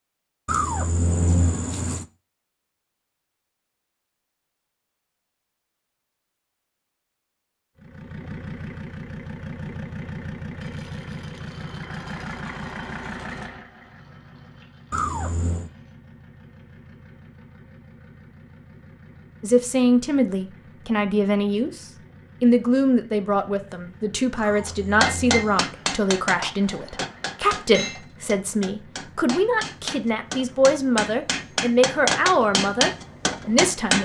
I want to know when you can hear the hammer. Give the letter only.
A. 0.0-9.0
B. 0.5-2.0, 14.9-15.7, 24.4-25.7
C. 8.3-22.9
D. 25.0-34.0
D.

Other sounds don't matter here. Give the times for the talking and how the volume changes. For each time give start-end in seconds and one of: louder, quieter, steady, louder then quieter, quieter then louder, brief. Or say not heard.
19.4-34.0 steady.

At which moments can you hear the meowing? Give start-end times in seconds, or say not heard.
0.5-2.0, 14.9-15.7, 24.4-25.7.